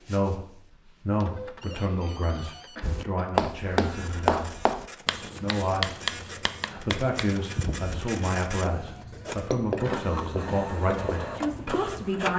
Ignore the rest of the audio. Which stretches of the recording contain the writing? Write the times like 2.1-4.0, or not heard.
2.8-12.1.